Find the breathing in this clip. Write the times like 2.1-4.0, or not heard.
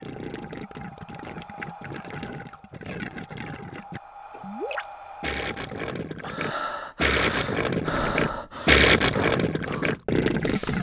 0.0-10.7.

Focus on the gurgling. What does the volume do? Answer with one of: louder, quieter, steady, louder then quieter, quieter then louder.
louder.